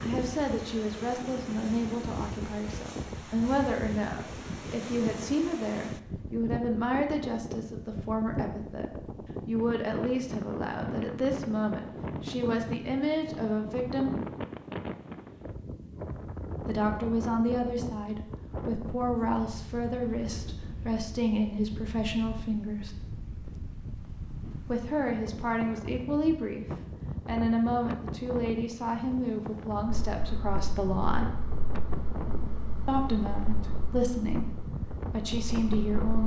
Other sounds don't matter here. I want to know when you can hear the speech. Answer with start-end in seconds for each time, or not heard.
0.0-14.1, 16.6-22.9, 24.6-26.6, 27.2-31.3, 32.9-36.2.